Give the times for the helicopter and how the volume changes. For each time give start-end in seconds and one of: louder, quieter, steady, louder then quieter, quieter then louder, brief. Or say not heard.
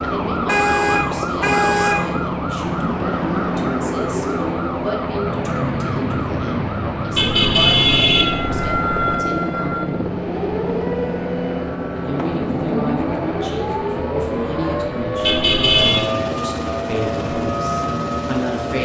0.0-18.8 steady.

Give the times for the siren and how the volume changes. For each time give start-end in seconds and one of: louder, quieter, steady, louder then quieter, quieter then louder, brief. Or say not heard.
0.0-18.8 steady.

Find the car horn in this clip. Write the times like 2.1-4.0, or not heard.
0.5-1.9, 7.2-9.2, 15.2-16.1.